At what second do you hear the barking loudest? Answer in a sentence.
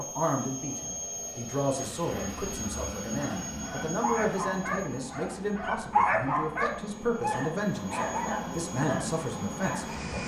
The volume of the barking peaks at 6 seconds.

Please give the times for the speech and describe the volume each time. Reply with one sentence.
The speech can be heard from 0.0 to 10.2 s, at a steady volume.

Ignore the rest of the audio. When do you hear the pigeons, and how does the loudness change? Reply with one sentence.
The pigeons can't be heard in this clip.